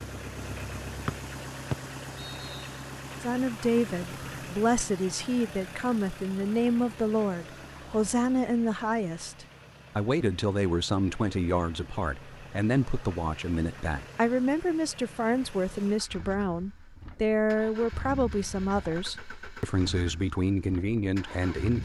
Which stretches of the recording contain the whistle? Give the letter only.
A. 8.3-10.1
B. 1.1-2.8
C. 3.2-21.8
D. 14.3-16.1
B.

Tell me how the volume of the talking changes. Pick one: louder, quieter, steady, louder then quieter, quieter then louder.
steady.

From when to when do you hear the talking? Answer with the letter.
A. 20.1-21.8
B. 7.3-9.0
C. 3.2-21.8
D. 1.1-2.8
C.